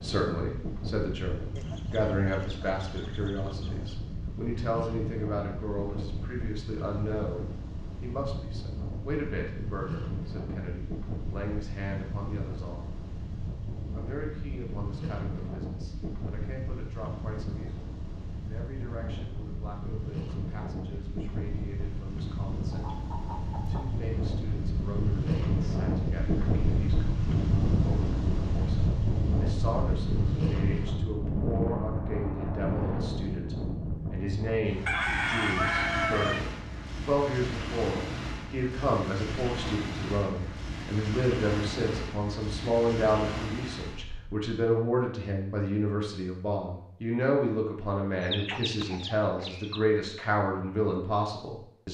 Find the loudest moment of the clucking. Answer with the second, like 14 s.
36 s.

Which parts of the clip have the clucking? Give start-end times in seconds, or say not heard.
1.6-4.0, 22.7-23.9, 34.9-36.4, 48.2-49.8.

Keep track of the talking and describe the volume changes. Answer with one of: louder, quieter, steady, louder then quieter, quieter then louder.
quieter then louder.